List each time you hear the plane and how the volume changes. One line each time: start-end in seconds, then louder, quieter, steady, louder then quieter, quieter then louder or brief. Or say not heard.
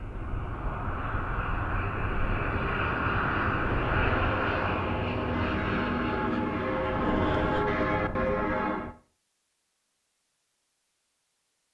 0.0-7.7 louder then quieter.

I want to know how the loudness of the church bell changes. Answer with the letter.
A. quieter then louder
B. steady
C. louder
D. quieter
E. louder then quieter
C.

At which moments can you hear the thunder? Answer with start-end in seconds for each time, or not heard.
6.9-8.9.